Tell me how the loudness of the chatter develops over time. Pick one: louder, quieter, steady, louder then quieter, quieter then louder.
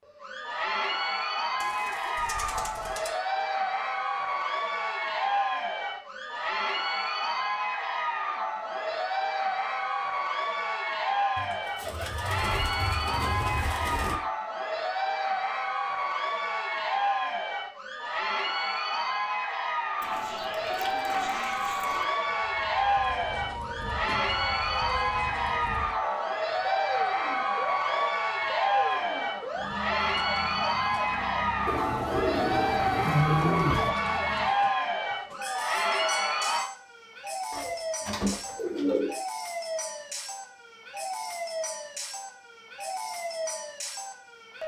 steady.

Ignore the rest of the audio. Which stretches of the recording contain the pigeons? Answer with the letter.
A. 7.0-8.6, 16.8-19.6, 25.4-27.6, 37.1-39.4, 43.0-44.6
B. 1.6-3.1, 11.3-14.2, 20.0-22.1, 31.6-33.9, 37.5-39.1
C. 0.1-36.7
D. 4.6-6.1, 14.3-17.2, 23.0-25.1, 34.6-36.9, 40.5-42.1
B.